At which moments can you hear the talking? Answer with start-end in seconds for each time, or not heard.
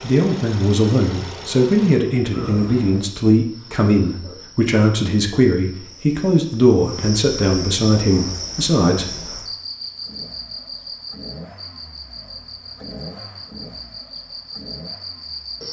0.0-9.1.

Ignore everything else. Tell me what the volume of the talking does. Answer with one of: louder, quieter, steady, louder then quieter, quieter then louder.
steady.